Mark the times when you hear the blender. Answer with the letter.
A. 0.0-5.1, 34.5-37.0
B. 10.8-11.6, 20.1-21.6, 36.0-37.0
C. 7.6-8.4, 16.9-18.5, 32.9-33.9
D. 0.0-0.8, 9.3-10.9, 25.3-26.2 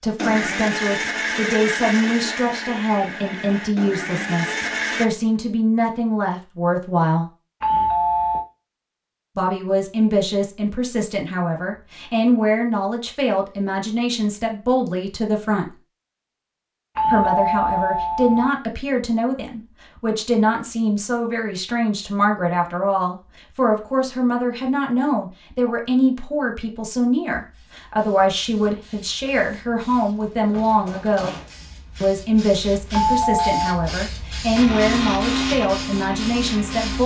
A.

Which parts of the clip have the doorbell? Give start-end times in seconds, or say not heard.
7.6-8.4, 16.9-18.5, 32.9-33.9.